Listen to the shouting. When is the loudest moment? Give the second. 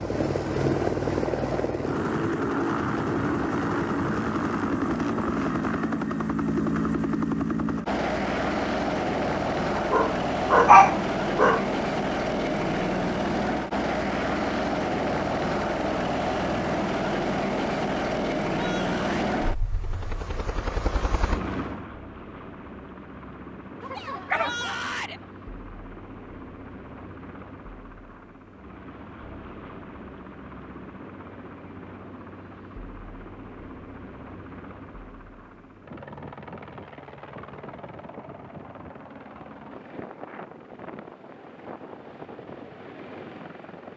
25 s.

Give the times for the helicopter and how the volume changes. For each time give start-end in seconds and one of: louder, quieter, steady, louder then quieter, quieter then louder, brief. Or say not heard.
0.0-43.9 quieter.